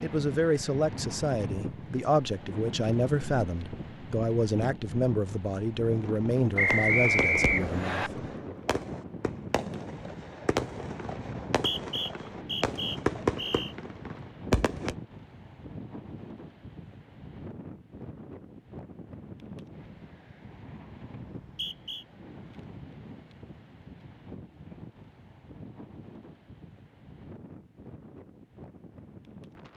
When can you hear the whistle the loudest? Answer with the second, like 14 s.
7 s.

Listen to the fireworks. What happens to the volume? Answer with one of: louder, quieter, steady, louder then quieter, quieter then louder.
louder.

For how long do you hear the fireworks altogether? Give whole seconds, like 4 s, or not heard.
9 s.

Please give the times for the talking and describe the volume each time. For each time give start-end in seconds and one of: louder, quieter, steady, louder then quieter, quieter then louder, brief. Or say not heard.
0.0-8.1 steady.